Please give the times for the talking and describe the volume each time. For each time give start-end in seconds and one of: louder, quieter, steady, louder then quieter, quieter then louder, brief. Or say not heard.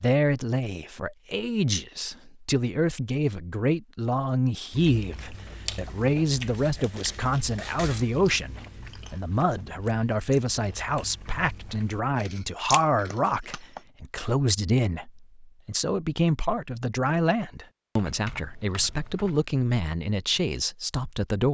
0.0-21.4 steady.